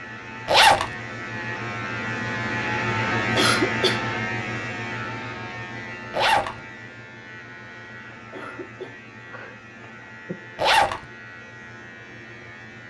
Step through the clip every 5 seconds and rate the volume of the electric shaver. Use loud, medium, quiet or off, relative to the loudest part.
loud, medium, quiet.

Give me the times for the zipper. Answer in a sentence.
You can hear the zipper from 0.5 to 0.9 s, from 6.1 to 6.5 s and from 10.6 to 11.0 s.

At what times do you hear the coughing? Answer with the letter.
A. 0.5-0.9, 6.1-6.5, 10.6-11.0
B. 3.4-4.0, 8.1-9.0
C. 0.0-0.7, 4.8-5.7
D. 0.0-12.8
B.